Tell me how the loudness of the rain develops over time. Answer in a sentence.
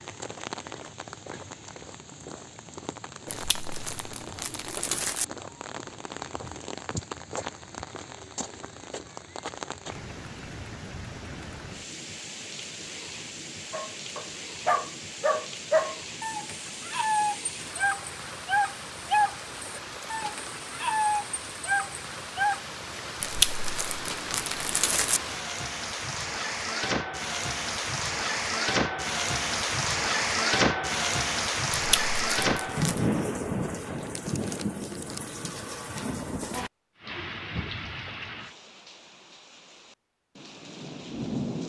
The volume of the rain goes up, then down.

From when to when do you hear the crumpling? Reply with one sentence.
The crumpling can be heard from 3.2 to 5.2 s, from 23.2 to 25.2 s and from 31.7 to 33.0 s.